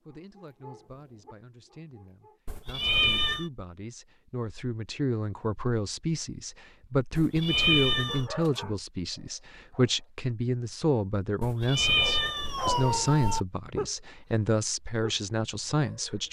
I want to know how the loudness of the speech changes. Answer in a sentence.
The volume of the speech goes up.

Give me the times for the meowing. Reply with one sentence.
You can hear the meowing from 2.5 to 3.5 s, from 7.2 to 8.2 s and from 11.4 to 13.4 s.